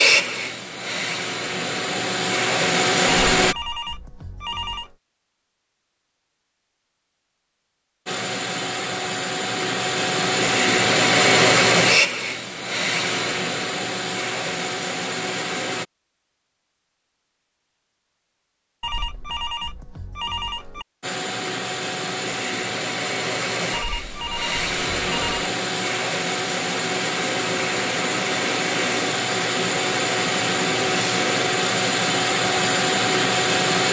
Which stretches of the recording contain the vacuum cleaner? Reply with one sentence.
You can hear the vacuum cleaner from 0.0 to 3.5 s, from 8.1 to 15.8 s and from 21.0 to 33.8 s.